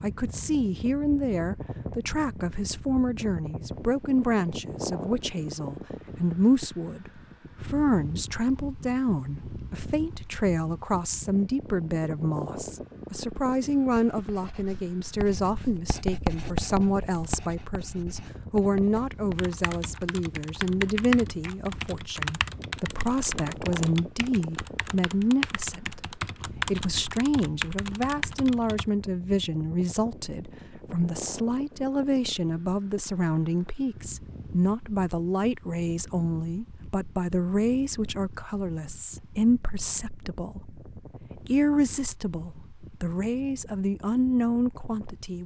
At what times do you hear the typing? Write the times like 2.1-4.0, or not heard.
19.4-28.9.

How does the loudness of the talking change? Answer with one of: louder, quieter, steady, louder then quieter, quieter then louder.
steady.